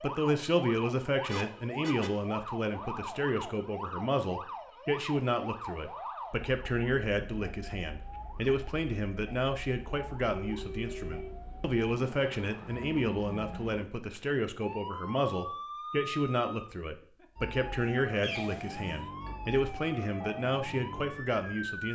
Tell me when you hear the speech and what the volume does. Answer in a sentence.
The speech can be heard from 0.0 to 21.8 s, at a steady volume.